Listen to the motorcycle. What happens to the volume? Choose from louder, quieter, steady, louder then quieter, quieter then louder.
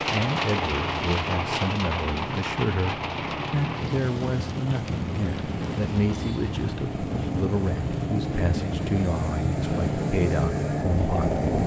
louder.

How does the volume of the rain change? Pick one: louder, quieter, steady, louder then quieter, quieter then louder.
quieter.